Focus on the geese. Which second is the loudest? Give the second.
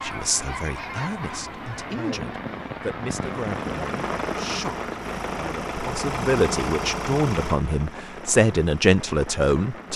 1 s.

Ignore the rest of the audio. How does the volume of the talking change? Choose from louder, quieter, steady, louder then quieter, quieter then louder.
louder.